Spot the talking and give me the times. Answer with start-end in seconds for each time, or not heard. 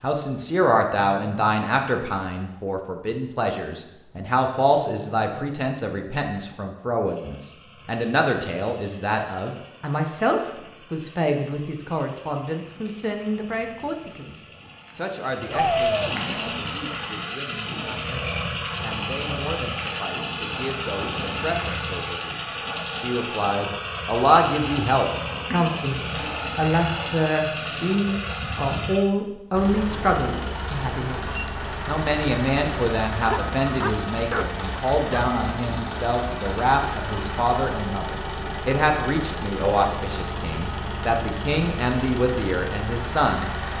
0.0-43.5.